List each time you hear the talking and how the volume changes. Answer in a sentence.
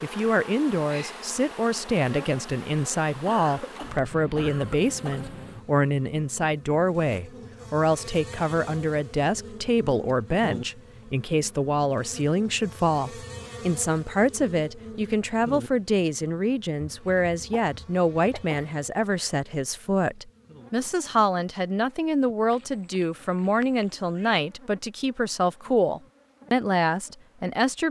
You can hear the talking from 0.0 to 27.8 s, at a steady volume.